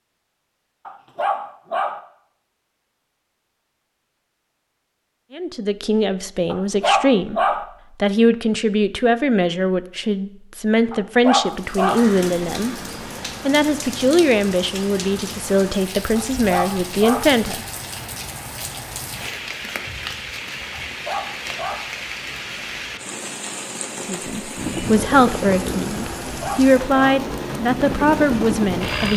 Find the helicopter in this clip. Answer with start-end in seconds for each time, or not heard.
24.6-29.1.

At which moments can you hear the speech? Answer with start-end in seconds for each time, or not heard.
5.3-12.8, 13.4-17.6, 24.1-29.1.